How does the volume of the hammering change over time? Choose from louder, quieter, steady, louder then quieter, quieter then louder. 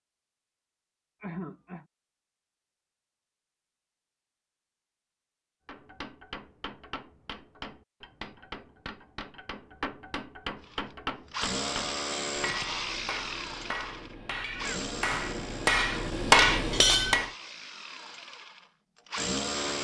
louder.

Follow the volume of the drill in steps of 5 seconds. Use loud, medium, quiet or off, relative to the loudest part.
off, off, loud, loud.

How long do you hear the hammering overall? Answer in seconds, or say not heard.
12 s.